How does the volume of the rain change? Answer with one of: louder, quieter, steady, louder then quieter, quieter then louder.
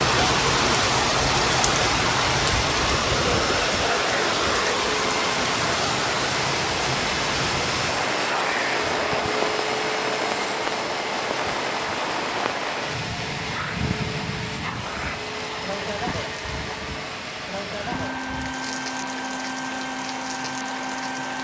quieter.